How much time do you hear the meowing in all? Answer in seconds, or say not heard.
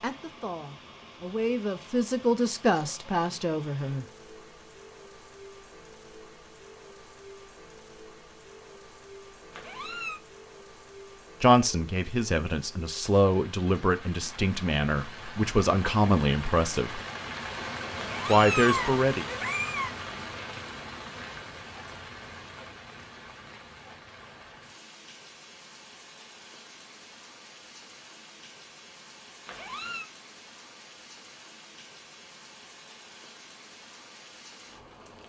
3 s.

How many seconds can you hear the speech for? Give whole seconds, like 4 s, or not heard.
11 s.